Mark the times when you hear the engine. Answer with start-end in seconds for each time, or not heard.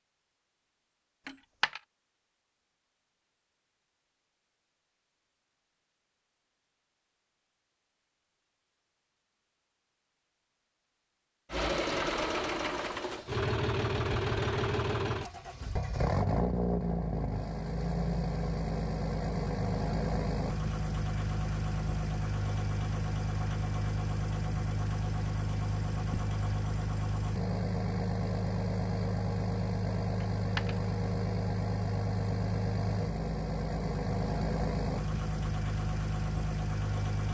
11.5-37.2.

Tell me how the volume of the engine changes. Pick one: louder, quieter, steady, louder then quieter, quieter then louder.
steady.